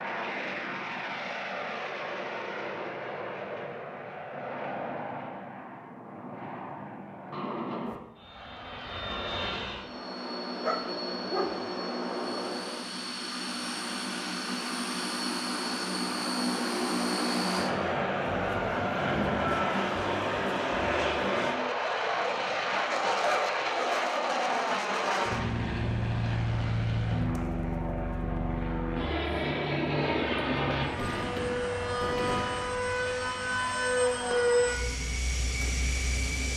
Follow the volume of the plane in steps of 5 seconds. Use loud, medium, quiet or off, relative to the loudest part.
medium, medium, medium, loud, loud, loud, loud, medium.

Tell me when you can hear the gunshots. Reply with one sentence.
You can hear the gunshots from 30.7 to 32.7 s.